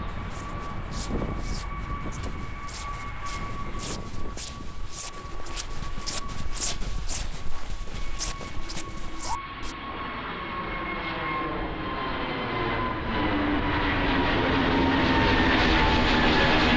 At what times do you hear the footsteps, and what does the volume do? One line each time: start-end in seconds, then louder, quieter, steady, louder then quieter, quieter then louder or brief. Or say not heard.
0.1-9.8 louder.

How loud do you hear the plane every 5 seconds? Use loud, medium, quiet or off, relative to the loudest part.
quiet, quiet, medium, loud.